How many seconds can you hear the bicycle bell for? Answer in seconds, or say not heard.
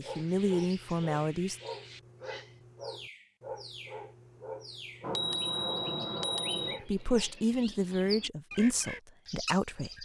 2 s.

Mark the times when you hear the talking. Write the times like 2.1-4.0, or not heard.
0.0-1.6, 6.8-10.0.